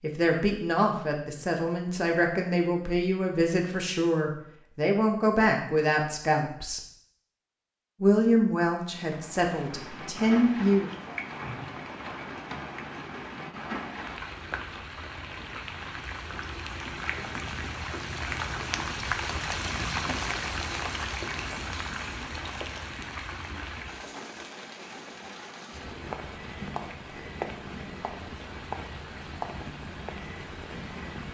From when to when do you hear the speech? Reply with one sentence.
You can hear the speech from 0.0 to 6.8 s and from 8.0 to 10.9 s.